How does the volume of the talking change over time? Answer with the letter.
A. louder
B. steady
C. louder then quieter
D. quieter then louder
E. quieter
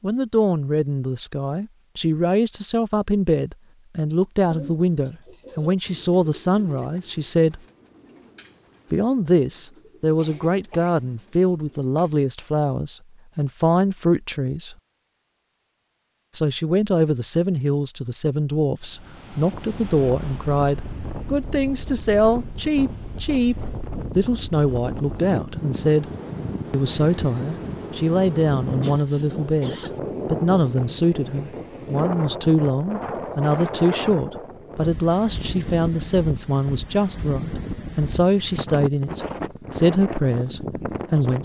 B.